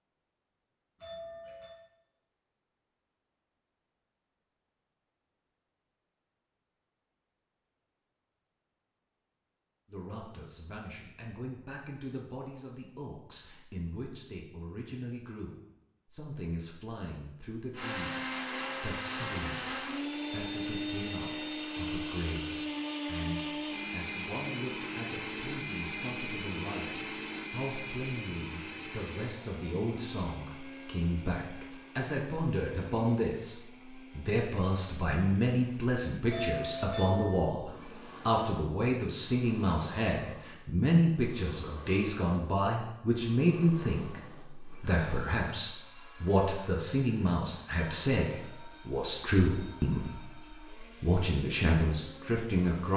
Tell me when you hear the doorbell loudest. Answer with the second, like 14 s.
37 s.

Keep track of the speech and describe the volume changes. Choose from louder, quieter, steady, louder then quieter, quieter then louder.
louder.